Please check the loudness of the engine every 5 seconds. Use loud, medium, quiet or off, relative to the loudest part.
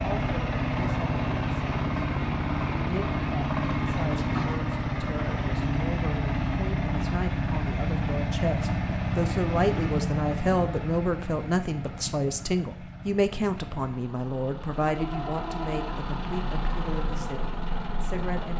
loud, loud, medium, medium.